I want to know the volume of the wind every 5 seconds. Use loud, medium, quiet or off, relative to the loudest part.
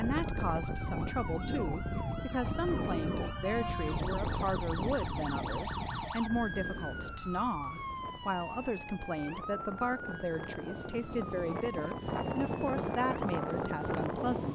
loud, medium, loud.